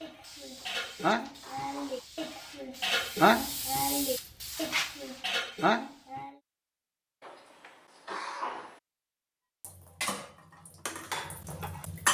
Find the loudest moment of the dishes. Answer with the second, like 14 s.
3 s.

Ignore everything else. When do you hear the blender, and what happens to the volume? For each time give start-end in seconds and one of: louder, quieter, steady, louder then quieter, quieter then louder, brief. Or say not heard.
not heard.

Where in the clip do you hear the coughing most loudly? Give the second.
8 s.